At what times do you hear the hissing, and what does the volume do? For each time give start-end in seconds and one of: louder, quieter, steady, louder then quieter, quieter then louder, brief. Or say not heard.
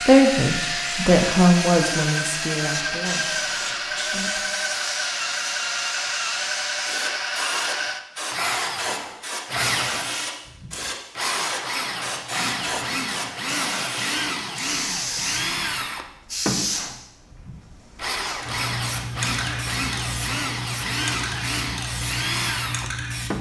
0.0-23.3 steady.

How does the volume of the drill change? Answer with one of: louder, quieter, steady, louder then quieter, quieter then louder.
steady.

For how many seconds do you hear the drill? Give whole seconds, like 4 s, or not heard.
23 s.